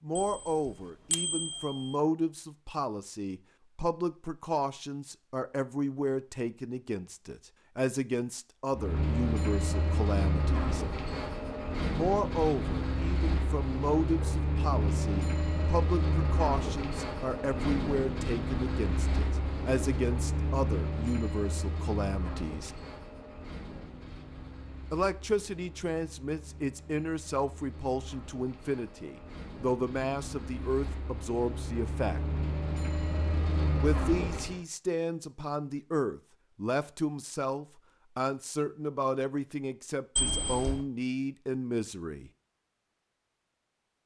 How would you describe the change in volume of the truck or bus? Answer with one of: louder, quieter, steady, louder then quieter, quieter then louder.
quieter then louder.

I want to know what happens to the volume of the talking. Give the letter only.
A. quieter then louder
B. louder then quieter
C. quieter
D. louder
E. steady
E.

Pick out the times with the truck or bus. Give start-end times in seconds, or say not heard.
8.7-34.6.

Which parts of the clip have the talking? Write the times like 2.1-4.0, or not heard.
0.0-10.8, 11.9-22.7, 24.9-32.2, 33.8-42.3.